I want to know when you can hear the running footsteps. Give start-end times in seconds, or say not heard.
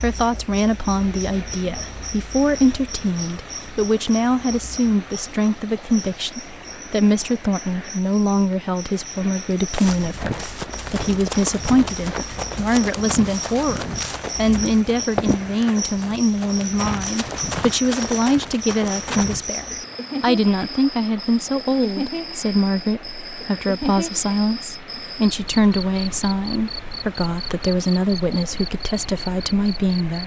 9.7-19.4.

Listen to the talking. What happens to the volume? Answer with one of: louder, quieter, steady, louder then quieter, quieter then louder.
steady.